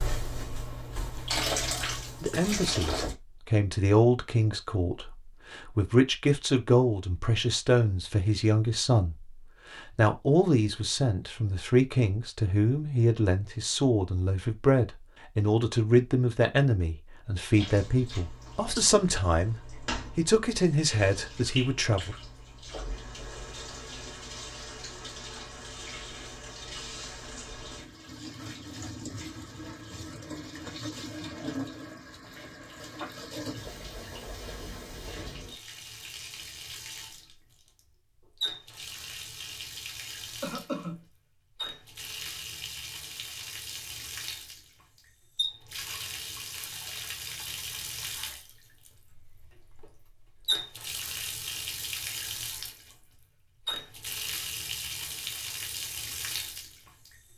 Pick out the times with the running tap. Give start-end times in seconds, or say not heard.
0.0-3.1, 17.5-57.3.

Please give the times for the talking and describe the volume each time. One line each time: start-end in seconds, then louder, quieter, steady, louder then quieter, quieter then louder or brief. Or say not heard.
2.2-22.1 steady.